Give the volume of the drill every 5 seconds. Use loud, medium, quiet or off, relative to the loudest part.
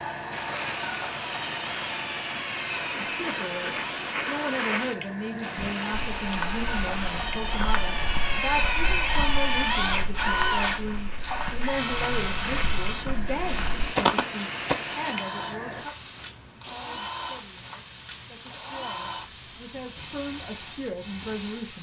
medium, loud, loud, medium, quiet.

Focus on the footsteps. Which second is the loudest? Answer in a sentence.
The loudest moment of the footsteps is at 14 seconds.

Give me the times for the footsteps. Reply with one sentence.
The footsteps can be heard from 5.5 to 14.8 s.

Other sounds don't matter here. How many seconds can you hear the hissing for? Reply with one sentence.
The hissing can be heard for 22 seconds in total.